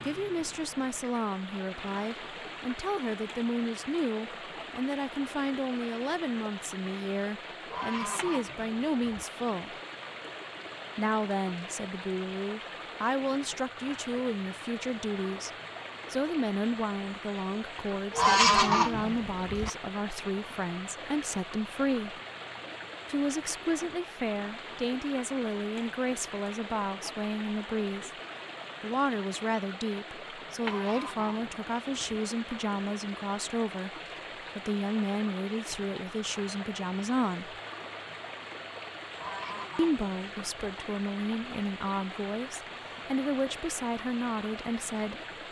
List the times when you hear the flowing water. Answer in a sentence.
The flowing water can be heard from 0.0 to 45.4 s.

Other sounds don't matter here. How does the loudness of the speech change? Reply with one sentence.
The volume of the speech stays about the same.